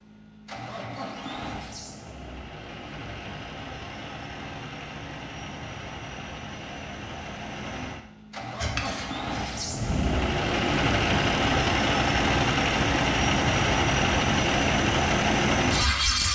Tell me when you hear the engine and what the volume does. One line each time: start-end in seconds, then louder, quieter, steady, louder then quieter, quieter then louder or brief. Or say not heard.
0.0-16.2 louder.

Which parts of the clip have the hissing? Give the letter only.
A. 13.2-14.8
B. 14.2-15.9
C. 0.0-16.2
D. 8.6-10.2
D.